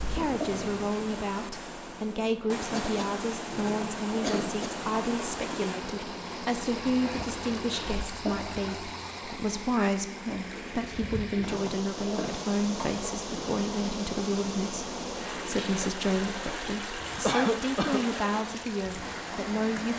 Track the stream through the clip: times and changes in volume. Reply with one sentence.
The stream can be heard from 0.0 to 19.9 s, at a steady volume.